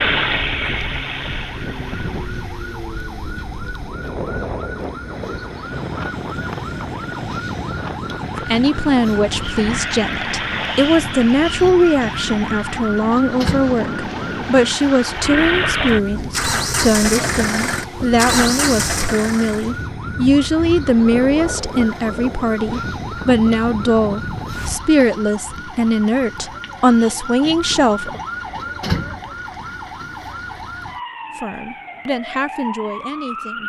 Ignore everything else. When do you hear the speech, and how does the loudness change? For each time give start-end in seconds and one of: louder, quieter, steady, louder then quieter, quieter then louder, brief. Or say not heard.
8.4-28.2 steady
31.4-33.6 brief.